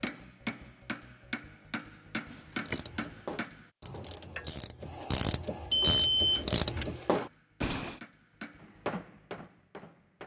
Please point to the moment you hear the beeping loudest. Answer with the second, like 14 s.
6 s.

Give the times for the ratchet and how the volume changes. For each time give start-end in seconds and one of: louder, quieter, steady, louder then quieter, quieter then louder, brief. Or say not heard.
2.6-8.0 louder.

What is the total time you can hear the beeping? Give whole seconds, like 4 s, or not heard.
2 s.